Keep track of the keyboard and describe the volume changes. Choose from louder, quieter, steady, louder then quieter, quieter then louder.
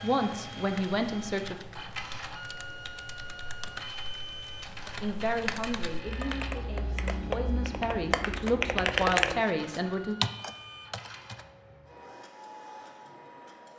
louder.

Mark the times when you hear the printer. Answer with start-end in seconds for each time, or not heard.
0.0-13.7.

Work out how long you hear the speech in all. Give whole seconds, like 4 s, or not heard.
7 s.